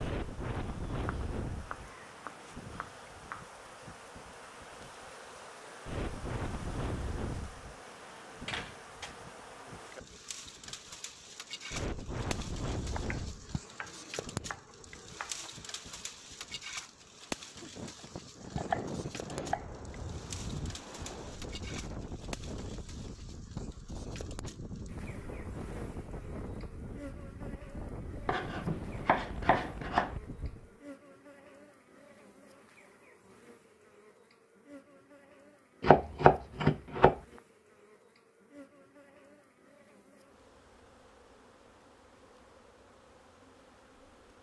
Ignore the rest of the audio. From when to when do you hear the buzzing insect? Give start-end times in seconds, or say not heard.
0.0-44.3.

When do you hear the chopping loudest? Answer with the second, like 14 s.
36 s.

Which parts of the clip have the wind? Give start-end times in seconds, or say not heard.
0.0-30.7.